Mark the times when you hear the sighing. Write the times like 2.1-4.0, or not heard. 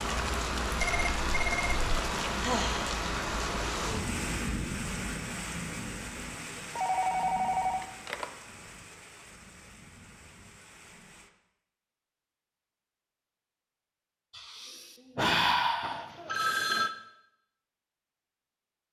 2.4-2.9, 14.3-16.9.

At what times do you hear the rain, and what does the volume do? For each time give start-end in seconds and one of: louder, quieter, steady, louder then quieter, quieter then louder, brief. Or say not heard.
0.0-11.3 quieter.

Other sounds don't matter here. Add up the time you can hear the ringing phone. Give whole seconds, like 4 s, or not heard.
4 s.